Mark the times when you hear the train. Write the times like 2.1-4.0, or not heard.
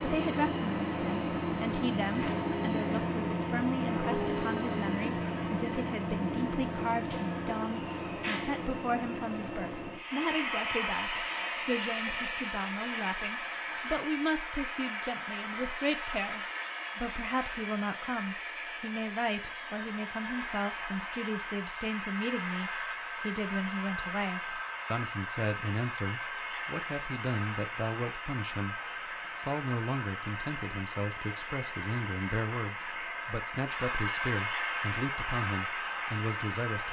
0.0-36.8.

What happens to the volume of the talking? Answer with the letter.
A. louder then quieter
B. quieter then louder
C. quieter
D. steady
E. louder
D.